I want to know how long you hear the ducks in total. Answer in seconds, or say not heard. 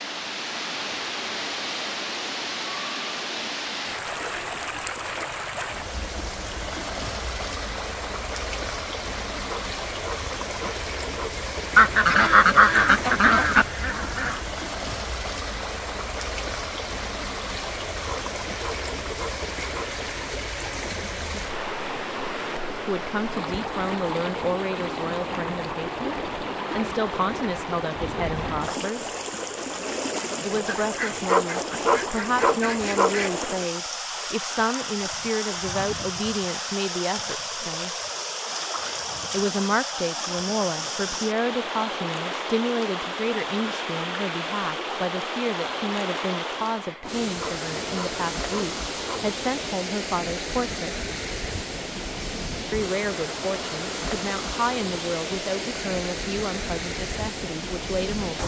5 s.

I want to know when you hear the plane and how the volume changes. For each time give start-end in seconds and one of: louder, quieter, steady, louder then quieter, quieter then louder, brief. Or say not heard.
not heard.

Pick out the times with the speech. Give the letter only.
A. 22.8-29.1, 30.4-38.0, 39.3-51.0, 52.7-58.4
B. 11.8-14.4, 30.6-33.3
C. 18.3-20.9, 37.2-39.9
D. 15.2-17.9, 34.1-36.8
A.